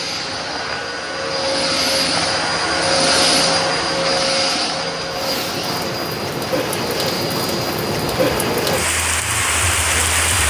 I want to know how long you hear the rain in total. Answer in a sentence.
The rain can be heard for 5 seconds in total.